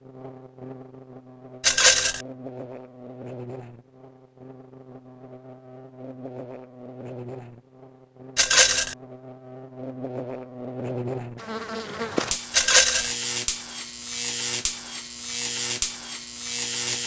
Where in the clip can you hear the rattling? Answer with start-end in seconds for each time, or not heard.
1.6-2.2, 8.3-8.9, 12.5-13.2.